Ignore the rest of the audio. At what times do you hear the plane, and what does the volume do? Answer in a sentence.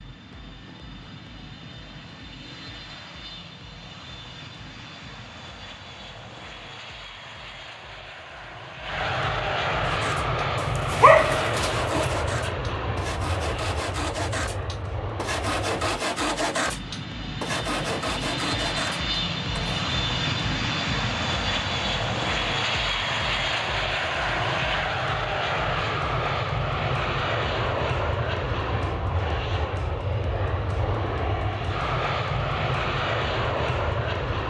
The plane can be heard from 0.0 to 34.4 s, getting louder.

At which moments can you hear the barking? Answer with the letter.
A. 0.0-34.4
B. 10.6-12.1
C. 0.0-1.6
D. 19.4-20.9
B.